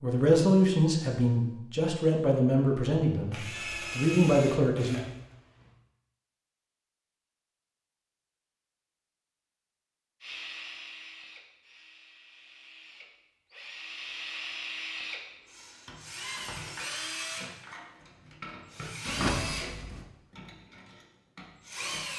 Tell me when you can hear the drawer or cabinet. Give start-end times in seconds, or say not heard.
19.1-20.1.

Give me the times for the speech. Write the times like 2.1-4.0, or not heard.
0.0-5.0.